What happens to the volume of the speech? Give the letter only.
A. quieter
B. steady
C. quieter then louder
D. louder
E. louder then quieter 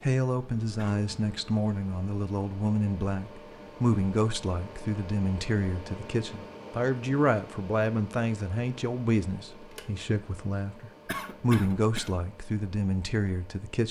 B.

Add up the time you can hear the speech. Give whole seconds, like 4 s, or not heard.
14 s.